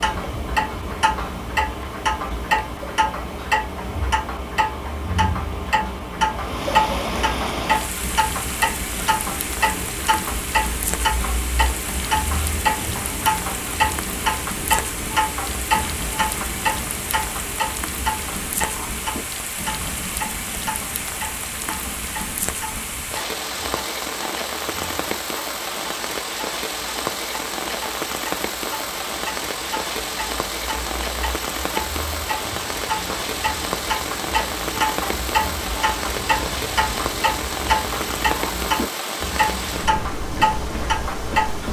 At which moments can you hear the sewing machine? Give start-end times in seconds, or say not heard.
not heard.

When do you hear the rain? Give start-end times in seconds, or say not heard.
0.0-41.6.